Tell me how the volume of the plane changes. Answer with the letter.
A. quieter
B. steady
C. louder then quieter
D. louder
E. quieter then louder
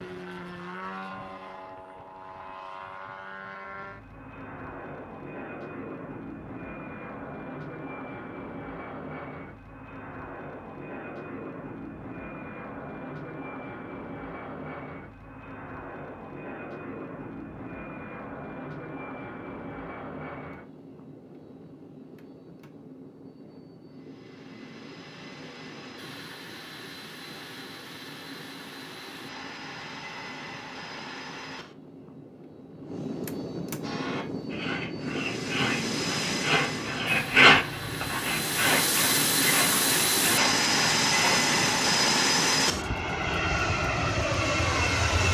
D.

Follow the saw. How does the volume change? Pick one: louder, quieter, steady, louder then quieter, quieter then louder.
louder then quieter.